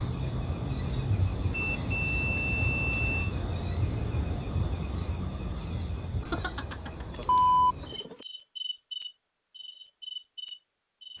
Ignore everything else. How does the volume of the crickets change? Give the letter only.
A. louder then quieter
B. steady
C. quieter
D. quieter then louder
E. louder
C.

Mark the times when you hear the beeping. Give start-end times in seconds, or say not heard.
1.5-3.4, 6.2-8.2.